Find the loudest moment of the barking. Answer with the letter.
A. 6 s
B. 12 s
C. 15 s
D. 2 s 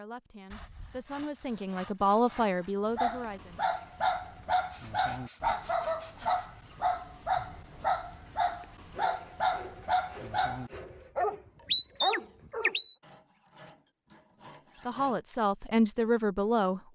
B.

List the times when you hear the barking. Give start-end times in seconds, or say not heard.
3.0-12.9.